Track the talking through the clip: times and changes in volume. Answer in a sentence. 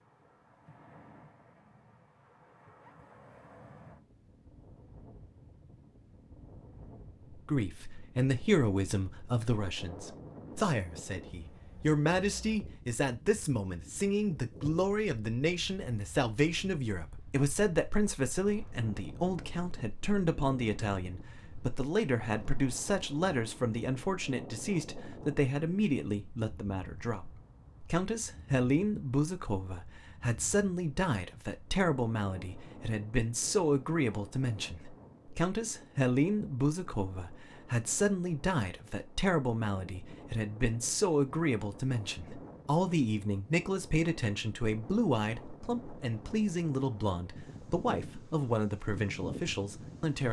You can hear the talking from 7.5 to 50.2 s, at a steady volume.